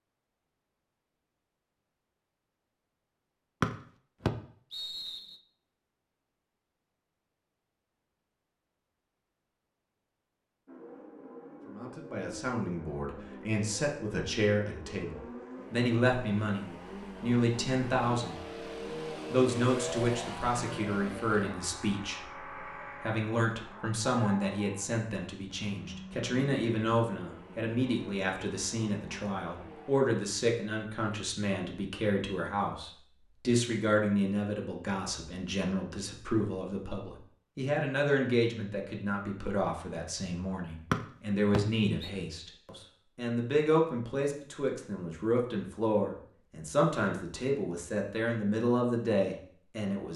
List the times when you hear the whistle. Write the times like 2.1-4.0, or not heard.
3.6-5.3, 40.9-42.1.